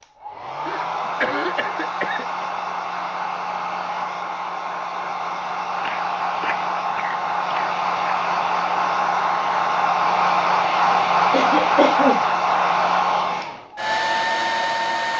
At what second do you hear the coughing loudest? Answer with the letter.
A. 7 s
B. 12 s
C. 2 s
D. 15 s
B.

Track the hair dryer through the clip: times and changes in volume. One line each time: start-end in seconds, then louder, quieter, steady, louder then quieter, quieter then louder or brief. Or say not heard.
0.0-15.1 louder.